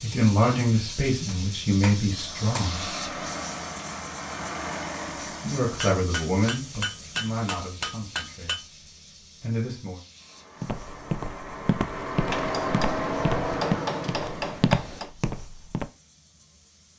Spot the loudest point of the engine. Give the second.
13 s.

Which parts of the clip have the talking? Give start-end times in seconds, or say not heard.
0.0-2.9, 5.4-8.7, 9.4-10.0.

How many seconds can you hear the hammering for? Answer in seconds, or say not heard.
7 s.